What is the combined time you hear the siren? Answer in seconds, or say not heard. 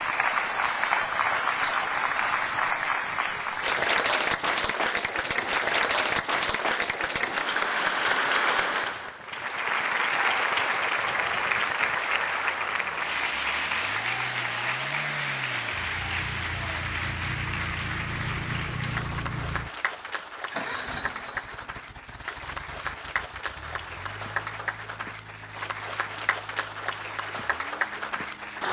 not heard.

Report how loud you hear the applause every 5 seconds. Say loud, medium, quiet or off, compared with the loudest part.
loud, loud, loud, medium, medium, medium.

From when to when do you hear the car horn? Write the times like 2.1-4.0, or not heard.
not heard.